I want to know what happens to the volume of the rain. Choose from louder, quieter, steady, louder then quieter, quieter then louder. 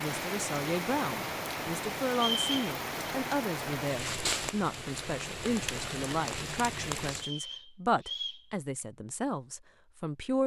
steady.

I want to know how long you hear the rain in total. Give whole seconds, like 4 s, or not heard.
7 s.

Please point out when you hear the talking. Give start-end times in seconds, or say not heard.
0.0-10.4.